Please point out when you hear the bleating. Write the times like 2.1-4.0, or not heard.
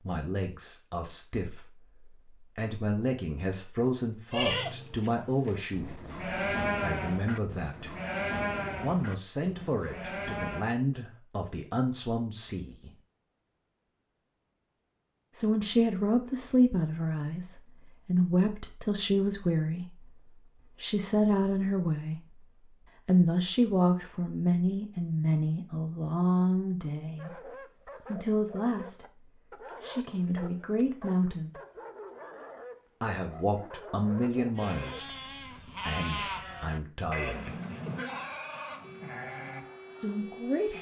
4.3-10.7, 34.5-40.7.